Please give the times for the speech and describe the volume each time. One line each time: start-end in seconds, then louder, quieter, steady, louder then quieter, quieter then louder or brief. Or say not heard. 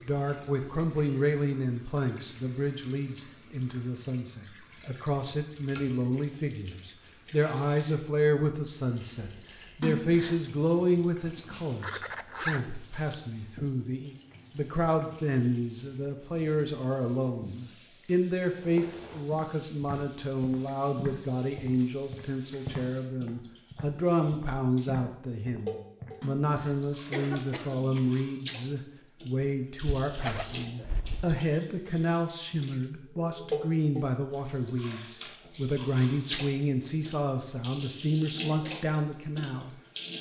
0.0-40.1 steady.